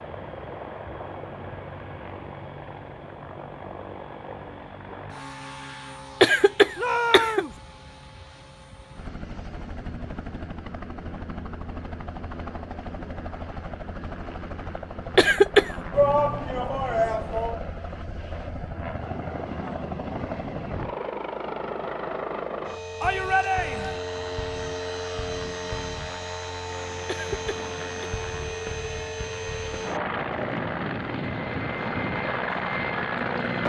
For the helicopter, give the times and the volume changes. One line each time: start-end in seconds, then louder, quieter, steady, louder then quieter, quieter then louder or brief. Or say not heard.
0.0-33.6 louder.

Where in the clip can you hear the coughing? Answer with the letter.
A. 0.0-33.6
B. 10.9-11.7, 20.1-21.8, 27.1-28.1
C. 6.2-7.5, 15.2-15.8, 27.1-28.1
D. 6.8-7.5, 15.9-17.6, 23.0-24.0
C.